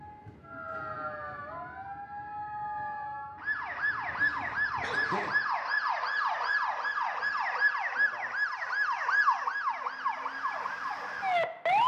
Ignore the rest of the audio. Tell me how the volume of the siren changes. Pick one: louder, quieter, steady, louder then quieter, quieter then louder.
louder.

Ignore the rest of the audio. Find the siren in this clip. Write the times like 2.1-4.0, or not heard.
0.0-11.8.